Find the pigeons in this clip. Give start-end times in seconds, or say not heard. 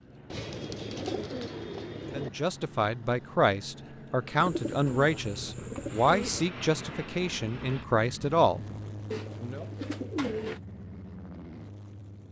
0.3-2.3, 4.4-6.5, 9.1-10.6.